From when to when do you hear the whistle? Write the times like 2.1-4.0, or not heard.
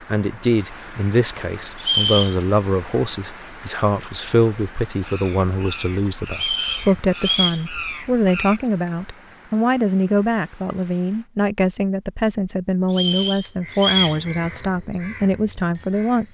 1.8-2.4, 6.3-7.7, 12.9-14.2.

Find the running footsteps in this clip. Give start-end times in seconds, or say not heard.
not heard.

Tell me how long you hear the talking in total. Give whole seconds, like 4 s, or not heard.
16 s.